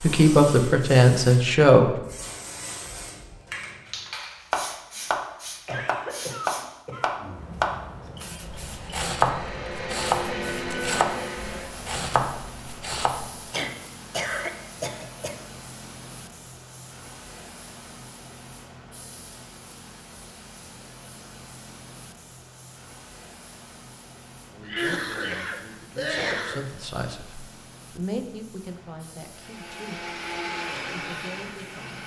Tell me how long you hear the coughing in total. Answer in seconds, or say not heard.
5 s.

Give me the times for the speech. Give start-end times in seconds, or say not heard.
0.0-1.9, 24.5-30.1, 30.9-32.0.